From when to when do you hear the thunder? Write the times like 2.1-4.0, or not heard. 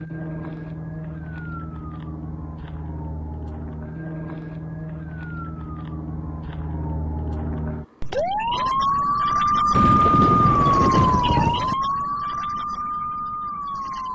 9.7-11.8.